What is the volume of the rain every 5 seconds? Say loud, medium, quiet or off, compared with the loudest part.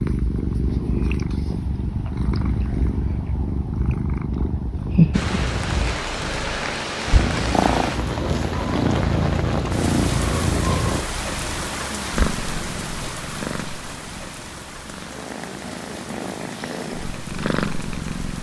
off, loud, loud, medium.